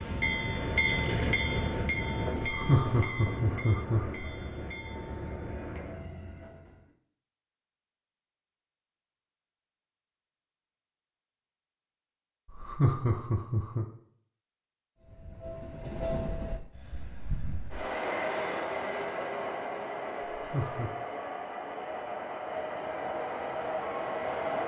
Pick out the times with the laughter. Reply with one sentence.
You can hear the laughter from 2.4 to 4.3 s, from 12.5 to 13.8 s and from 20.4 to 20.9 s.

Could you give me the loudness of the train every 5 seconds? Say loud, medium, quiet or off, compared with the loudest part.
loud, medium, off, loud, loud.